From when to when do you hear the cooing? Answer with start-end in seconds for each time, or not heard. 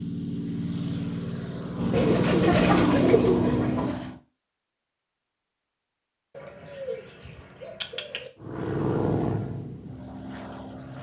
1.9-4.0, 6.3-8.3.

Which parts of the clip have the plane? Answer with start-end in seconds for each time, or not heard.
0.0-4.2, 8.4-10.9.